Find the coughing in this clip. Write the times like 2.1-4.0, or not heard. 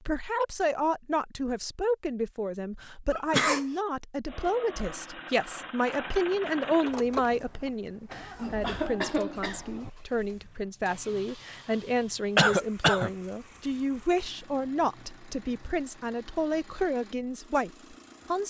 3.1-3.6, 8.3-9.9, 12.3-13.1.